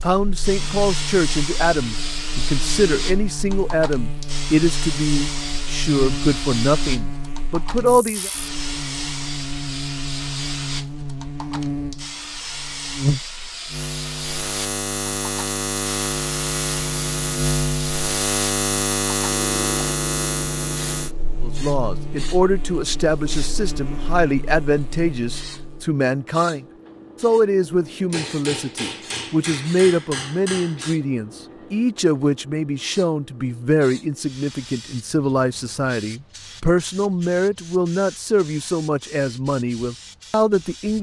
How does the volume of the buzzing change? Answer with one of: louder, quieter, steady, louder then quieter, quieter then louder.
louder then quieter.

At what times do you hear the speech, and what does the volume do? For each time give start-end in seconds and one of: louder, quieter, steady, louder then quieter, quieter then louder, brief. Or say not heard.
0.0-8.3 steady
21.4-40.9 steady.